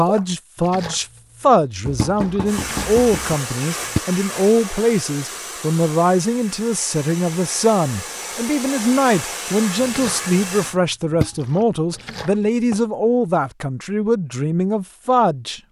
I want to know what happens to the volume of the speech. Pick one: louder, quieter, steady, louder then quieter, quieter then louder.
steady.